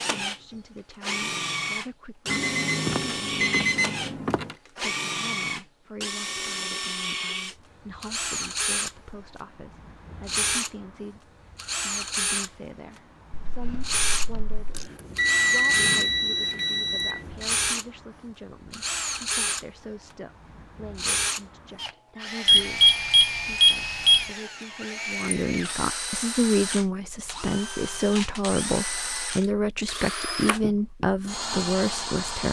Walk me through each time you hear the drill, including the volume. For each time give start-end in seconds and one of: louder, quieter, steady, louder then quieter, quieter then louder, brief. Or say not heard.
0.0-32.4 steady.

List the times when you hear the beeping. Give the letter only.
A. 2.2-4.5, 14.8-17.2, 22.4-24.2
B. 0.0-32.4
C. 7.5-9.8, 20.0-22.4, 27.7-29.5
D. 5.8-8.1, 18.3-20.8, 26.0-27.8
A.